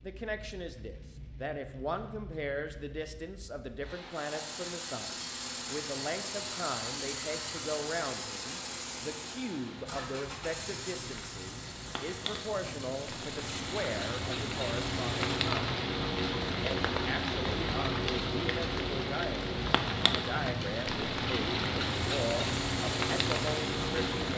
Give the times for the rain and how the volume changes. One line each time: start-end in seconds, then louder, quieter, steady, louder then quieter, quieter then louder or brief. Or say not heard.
0.0-24.3 louder.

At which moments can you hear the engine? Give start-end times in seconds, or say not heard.
4.1-15.4, 21.9-24.1.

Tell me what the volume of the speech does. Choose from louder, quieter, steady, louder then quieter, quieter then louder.
steady.